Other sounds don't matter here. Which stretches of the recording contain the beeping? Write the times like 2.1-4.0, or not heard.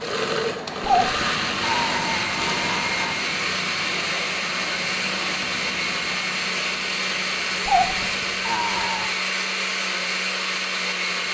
not heard.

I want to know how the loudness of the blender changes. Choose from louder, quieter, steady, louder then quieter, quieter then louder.
steady.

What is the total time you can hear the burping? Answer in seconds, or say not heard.
4 s.